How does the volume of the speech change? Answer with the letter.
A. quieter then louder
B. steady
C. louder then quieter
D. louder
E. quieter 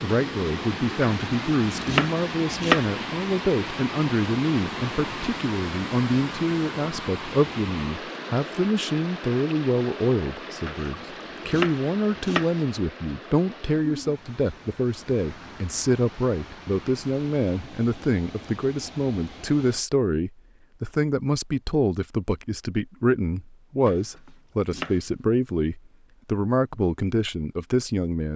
B.